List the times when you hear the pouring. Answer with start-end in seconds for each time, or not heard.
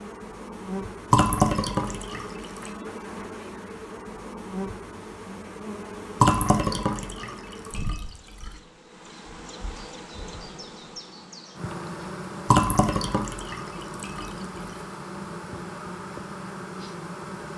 1.1-2.7, 6.2-8.1, 12.4-14.3.